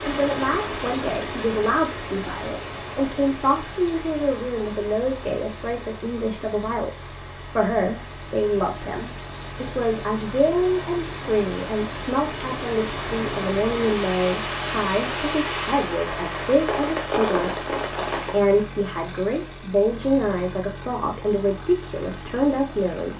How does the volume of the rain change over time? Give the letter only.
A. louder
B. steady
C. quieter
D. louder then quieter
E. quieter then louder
E.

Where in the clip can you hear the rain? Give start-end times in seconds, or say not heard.
0.0-18.4.